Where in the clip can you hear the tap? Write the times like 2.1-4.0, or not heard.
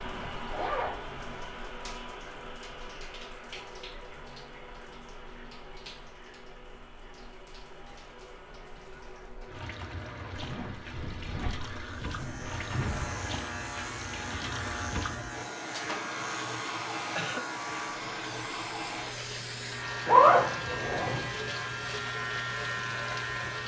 0.0-23.6.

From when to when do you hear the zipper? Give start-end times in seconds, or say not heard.
0.5-1.0, 10.3-13.1, 20.1-21.2.